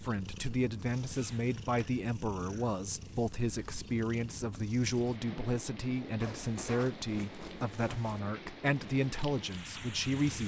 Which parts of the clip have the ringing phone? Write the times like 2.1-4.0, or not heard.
not heard.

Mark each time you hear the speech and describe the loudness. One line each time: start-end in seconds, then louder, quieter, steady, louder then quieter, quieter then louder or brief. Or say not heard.
0.0-10.4 steady.